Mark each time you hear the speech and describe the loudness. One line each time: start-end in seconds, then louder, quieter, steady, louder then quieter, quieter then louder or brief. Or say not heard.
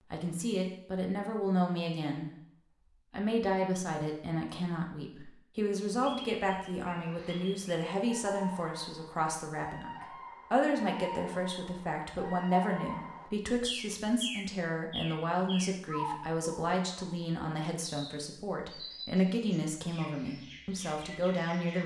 0.1-2.3 brief
3.1-21.8 steady.